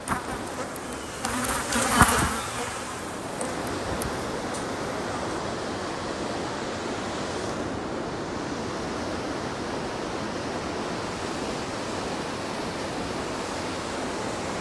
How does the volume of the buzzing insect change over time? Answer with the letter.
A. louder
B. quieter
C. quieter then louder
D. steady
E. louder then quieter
E.